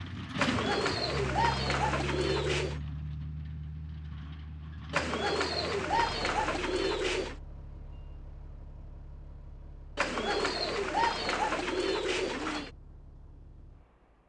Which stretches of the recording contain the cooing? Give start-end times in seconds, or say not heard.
0.3-2.8, 4.9-7.3, 9.9-12.7.